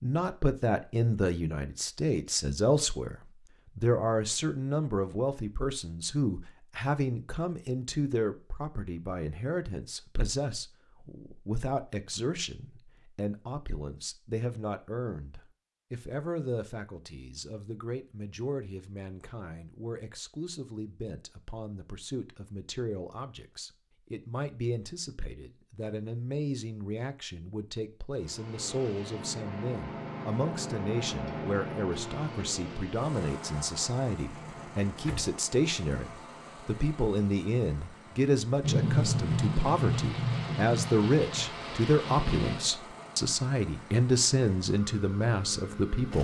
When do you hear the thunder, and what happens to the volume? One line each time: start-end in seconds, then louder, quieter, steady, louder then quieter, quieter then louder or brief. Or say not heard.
38.6-42.7 quieter.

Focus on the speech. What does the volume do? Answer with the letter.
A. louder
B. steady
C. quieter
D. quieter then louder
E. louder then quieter
D.